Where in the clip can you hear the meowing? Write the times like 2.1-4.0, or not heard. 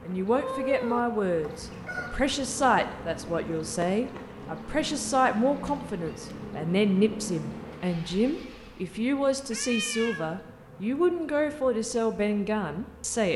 0.3-1.1, 5.7-6.3, 9.5-10.3.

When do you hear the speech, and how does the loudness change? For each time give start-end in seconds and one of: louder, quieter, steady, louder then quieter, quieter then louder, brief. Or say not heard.
0.1-13.3 steady.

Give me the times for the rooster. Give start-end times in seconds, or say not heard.
1.4-2.1.